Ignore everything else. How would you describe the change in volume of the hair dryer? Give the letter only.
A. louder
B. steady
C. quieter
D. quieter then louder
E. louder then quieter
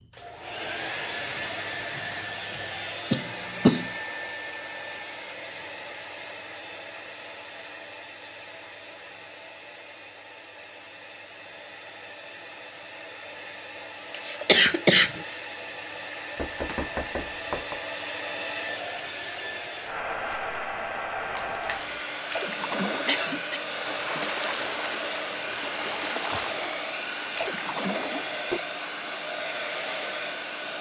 D.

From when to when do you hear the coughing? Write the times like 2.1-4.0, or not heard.
3.1-3.9, 14.1-15.4, 23.1-23.6.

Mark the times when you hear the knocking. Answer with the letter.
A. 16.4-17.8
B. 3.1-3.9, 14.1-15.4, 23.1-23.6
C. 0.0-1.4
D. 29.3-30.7
A.